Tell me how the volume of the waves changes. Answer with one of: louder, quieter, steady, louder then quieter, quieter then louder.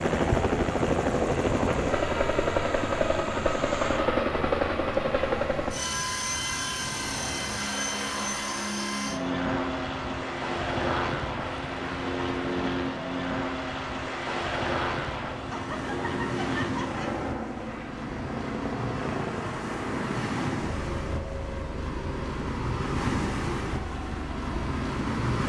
louder.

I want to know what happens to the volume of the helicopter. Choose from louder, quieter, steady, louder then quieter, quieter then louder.
quieter.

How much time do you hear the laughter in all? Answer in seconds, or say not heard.
2 s.